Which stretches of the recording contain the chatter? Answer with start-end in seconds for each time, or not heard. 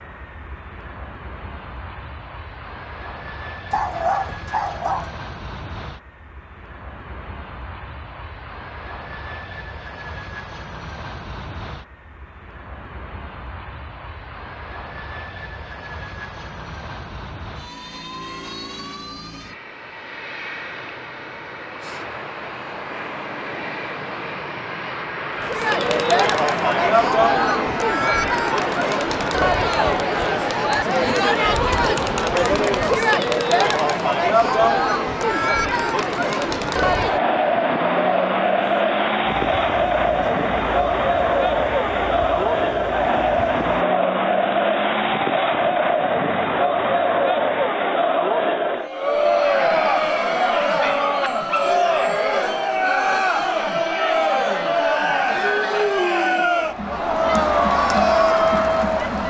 25.4-59.2.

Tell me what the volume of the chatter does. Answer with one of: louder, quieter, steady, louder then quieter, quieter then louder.
steady.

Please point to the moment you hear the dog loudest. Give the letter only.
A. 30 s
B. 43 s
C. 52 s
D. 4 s
D.